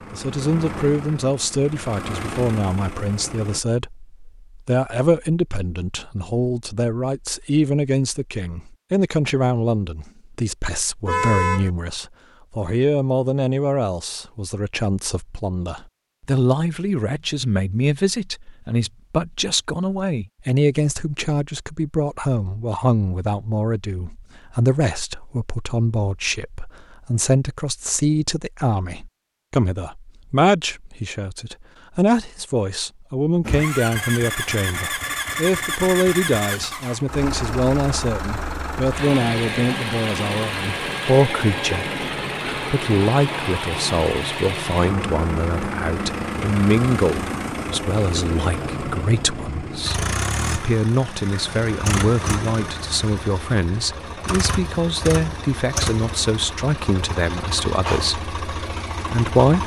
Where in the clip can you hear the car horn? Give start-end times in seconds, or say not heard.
11.1-11.7.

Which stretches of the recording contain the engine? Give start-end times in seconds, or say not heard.
0.0-3.6, 33.4-59.6.